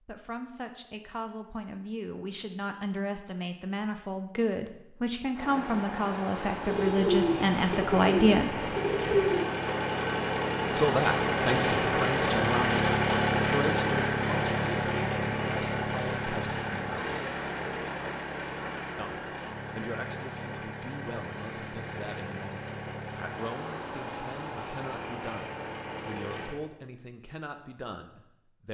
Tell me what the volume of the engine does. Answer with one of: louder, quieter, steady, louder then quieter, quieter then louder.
louder then quieter.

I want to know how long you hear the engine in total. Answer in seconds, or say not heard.
21 s.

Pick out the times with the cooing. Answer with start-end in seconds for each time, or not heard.
6.7-9.4.